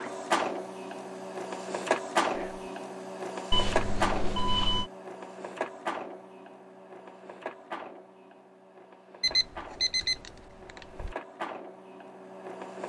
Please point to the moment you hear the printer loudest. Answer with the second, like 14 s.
2 s.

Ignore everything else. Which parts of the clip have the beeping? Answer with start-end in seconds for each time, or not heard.
3.5-4.9, 9.2-11.2.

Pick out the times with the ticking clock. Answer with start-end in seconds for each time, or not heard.
not heard.